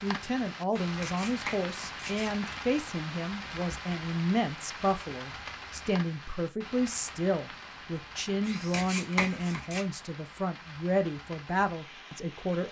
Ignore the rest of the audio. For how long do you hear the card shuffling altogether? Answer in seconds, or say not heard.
3 s.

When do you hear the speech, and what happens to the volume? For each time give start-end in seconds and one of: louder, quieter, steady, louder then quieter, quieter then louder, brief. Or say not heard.
0.0-12.6 steady.